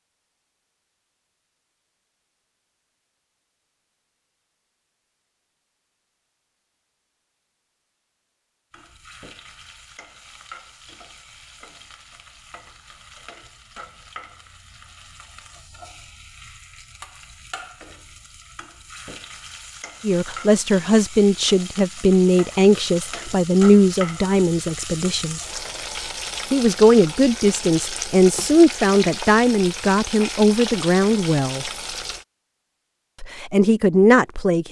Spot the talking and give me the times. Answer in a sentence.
You can hear the talking from 20.0 to 25.4 s, from 26.5 to 31.6 s and from 33.2 to 34.6 s.